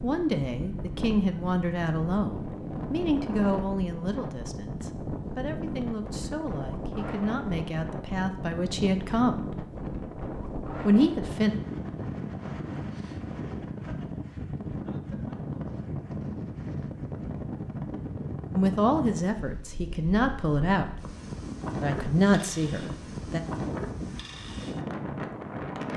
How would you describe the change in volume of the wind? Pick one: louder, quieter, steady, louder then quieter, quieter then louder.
steady.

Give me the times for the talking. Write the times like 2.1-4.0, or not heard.
0.0-9.4, 10.8-11.6, 18.6-21.0, 21.8-23.4.